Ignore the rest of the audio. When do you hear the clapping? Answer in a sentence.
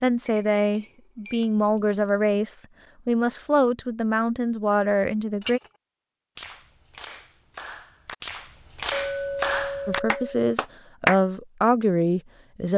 You can hear the clapping from 6.3 to 11.2 s.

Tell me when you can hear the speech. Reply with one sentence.
You can hear the speech from 0.0 to 5.6 s and from 9.8 to 12.7 s.